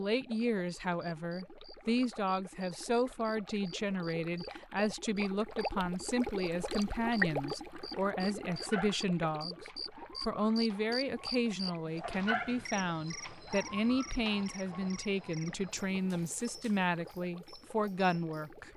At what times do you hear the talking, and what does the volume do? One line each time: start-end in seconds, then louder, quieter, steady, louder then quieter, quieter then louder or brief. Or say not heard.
0.0-18.7 steady.